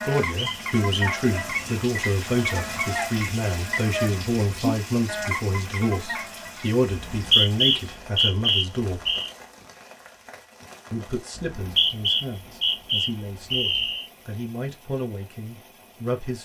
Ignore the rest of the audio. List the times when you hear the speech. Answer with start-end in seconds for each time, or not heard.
0.0-9.0, 10.9-16.4.